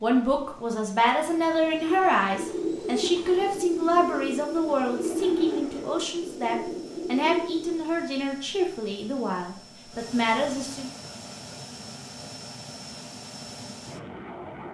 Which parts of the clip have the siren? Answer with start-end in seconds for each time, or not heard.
not heard.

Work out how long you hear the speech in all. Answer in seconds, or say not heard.
11 s.